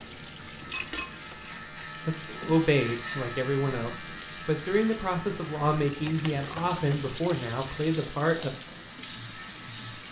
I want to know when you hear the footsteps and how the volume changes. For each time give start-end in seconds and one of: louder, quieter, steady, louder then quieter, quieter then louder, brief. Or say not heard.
not heard.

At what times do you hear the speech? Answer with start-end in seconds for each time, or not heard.
2.0-8.5.